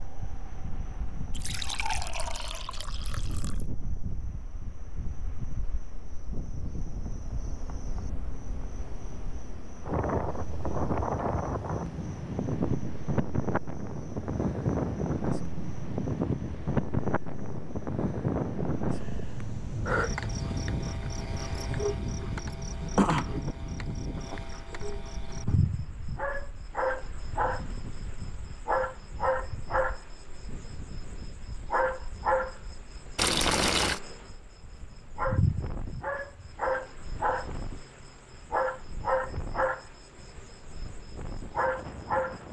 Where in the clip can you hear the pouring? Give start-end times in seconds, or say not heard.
1.3-3.6, 33.1-34.0.